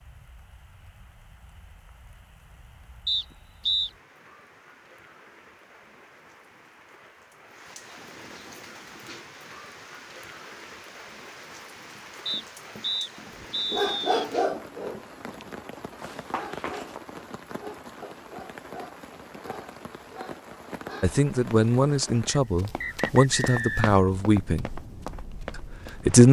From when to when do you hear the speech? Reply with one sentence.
The speech can be heard from 21.0 to 24.7 s and from 25.6 to 26.2 s.